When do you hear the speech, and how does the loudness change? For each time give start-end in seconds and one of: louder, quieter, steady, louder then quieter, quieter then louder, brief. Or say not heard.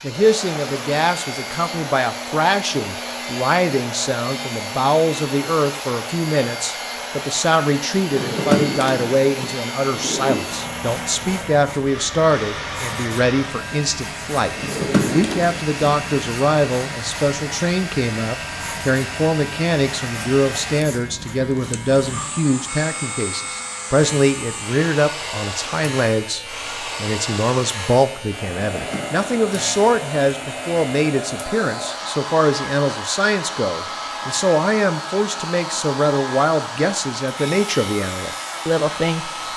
0.0-39.5 steady.